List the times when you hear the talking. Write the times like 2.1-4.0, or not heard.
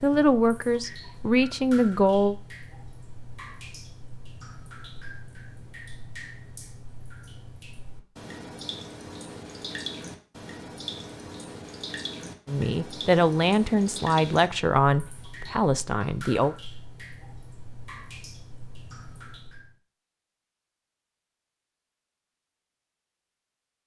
0.0-2.4, 12.4-16.6.